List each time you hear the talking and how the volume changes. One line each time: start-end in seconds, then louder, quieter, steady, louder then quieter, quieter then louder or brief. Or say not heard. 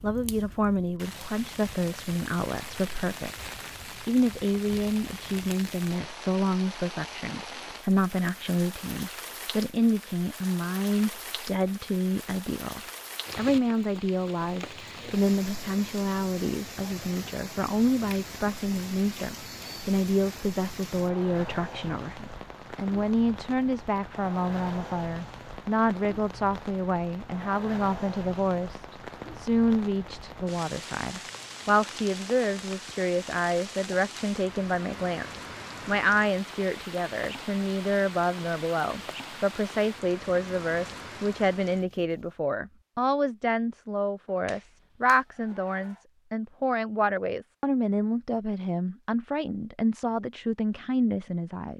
0.0-51.7 steady.